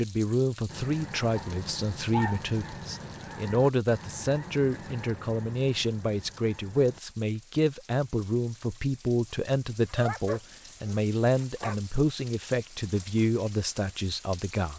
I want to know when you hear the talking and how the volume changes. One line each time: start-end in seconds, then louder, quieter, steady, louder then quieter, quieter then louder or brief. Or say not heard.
0.0-14.7 steady.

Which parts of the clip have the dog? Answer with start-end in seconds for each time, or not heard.
1.4-2.5, 9.9-11.8.